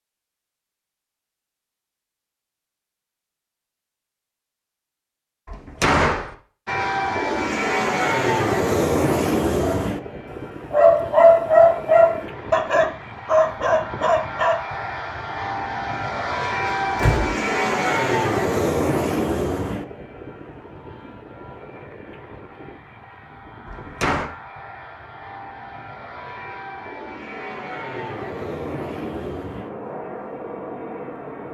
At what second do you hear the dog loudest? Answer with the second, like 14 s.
11 s.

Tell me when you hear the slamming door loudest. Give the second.
6 s.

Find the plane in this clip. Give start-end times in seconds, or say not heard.
6.7-31.4.